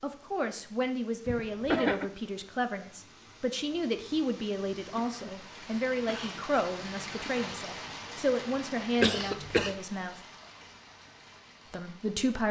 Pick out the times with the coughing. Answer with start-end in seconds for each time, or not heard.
1.2-2.0, 5.0-6.5, 9.0-9.8.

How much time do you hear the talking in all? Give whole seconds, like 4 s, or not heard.
11 s.